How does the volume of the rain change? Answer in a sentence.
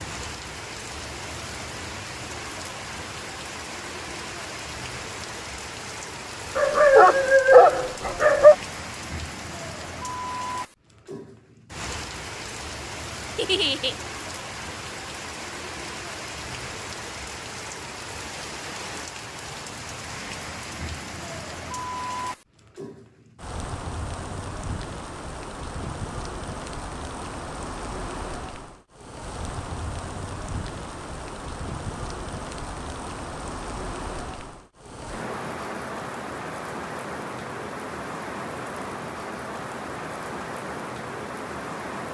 The loudness of the rain stays about the same.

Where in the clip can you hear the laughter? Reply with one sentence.
You can hear the laughter from 13.3 to 13.9 s.